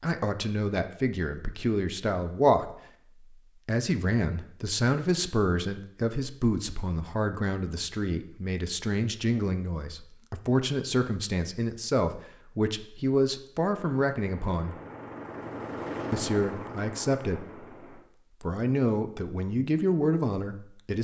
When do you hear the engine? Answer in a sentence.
You can hear the engine from 13.7 to 18.1 s.